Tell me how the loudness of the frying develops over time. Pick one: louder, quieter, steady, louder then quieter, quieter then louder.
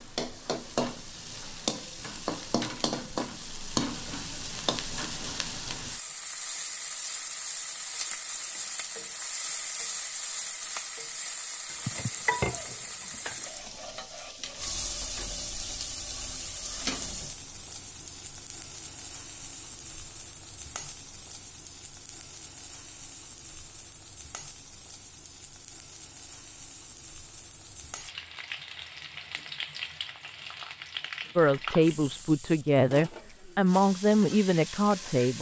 quieter then louder.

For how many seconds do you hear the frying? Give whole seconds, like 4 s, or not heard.
35 s.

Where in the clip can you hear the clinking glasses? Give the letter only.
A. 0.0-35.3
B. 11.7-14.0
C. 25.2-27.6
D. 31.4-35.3
B.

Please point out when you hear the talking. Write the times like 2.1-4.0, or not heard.
31.4-35.3.